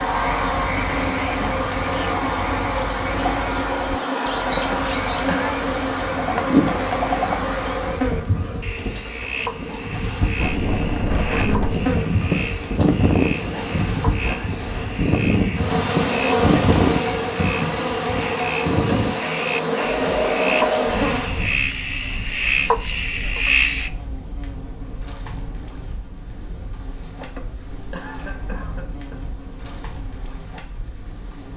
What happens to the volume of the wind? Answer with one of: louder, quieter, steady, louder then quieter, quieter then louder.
quieter.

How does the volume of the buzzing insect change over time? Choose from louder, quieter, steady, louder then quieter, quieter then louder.
quieter.